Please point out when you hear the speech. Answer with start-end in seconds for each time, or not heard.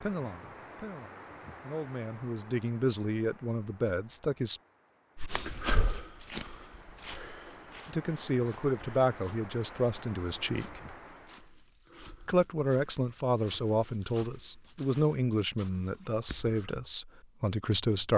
0.0-4.6, 7.8-10.8, 12.2-18.1.